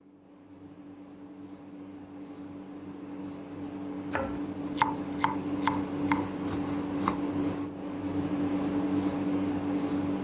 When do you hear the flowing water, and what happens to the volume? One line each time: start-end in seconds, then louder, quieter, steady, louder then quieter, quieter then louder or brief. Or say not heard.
not heard.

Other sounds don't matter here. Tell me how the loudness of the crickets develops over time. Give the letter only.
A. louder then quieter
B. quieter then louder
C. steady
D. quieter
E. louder
E.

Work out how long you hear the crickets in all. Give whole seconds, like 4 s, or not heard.
10 s.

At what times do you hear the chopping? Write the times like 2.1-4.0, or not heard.
4.1-7.3.